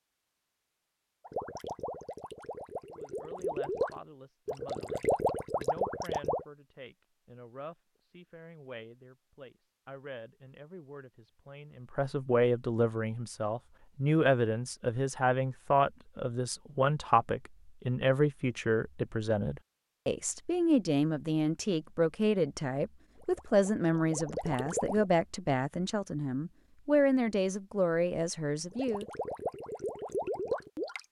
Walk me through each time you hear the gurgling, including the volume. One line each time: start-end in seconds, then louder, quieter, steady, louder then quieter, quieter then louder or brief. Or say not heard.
1.2-6.5 louder
23.1-25.1 brief
28.7-31.0 brief.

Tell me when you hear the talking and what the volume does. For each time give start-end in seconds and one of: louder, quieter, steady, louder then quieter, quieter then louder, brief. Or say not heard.
2.9-29.1 louder.